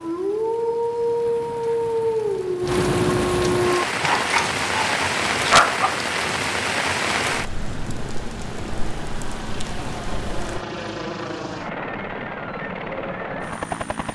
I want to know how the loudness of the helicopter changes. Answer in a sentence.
The volume of the helicopter goes up.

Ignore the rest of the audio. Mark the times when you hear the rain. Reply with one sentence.
The rain can be heard from 0.0 to 10.7 s.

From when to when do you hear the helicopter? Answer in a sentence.
The helicopter can be heard from 7.3 to 14.1 s.